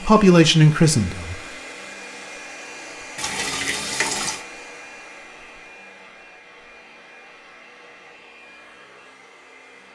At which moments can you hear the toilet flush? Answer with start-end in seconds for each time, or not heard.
3.1-4.4.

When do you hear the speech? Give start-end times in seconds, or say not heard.
0.1-1.4.